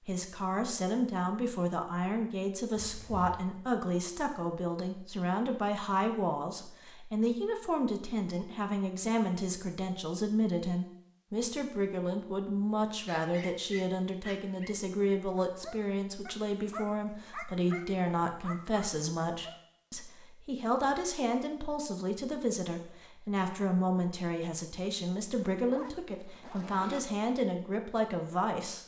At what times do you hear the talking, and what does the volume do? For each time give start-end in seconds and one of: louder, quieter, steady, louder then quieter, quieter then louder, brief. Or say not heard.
0.1-28.8 steady.